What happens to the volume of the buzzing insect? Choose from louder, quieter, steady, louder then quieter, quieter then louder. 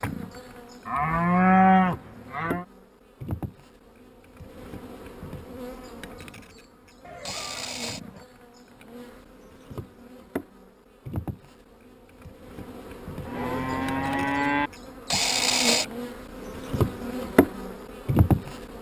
louder.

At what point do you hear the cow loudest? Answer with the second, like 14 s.
2 s.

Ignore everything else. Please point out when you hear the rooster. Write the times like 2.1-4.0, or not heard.
7.0-8.2.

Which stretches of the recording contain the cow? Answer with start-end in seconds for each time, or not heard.
0.8-2.6, 13.2-14.7.